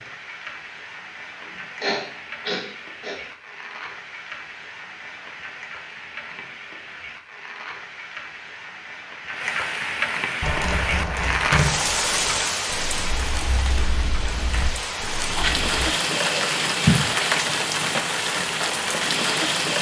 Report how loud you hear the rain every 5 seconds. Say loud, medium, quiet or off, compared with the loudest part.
quiet, medium, loud, loud.